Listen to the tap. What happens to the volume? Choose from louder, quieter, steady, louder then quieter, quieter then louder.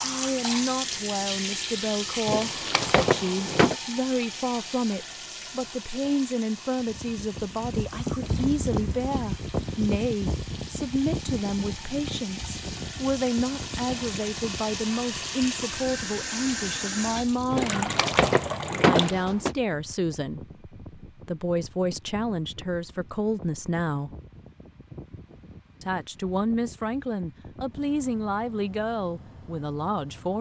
quieter then louder.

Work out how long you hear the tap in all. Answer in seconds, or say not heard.
19 s.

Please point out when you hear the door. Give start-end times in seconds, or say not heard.
2.2-3.8, 17.5-19.6.